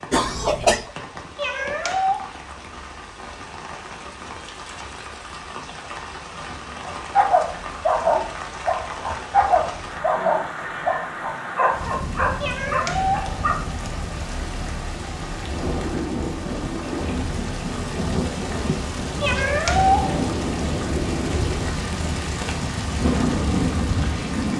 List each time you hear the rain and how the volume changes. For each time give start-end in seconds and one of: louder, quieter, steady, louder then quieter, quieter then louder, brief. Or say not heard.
0.0-24.5 louder.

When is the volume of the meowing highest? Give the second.
20 s.